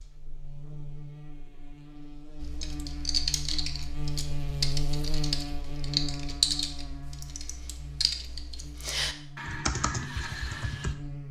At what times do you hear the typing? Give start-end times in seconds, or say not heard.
2.4-10.9.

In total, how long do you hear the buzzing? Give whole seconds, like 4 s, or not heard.
11 s.